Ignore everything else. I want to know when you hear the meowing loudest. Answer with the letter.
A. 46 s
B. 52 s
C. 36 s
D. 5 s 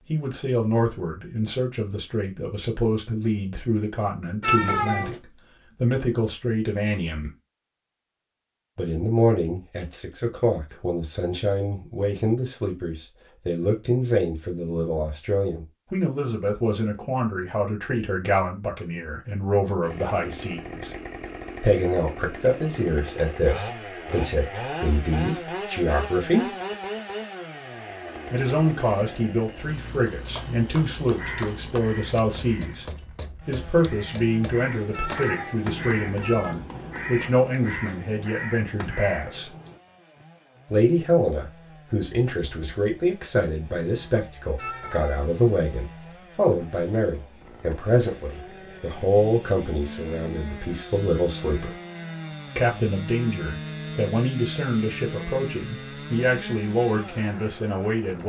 D.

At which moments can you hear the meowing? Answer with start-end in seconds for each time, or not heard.
4.4-5.2, 34.9-36.5, 44.5-45.5.